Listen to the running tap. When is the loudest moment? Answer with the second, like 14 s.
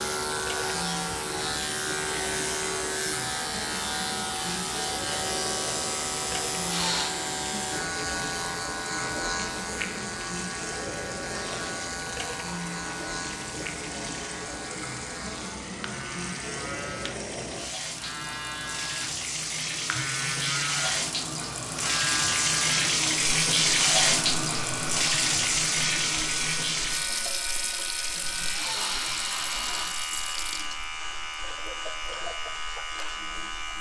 24 s.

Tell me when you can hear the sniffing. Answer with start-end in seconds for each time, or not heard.
6.5-7.2, 28.1-29.9.